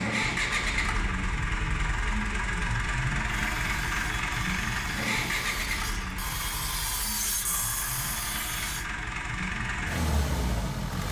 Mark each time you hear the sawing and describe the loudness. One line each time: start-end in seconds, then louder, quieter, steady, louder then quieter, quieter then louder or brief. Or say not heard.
3.2-8.8 louder.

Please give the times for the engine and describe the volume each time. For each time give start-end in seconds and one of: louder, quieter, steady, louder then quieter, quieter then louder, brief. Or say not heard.
0.0-11.0 quieter then louder.